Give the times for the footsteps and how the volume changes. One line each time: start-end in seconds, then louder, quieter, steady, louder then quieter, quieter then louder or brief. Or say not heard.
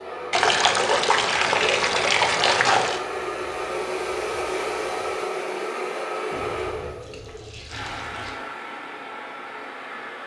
not heard.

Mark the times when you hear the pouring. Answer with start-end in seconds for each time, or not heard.
0.3-3.0, 6.3-8.3.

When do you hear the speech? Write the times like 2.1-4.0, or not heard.
not heard.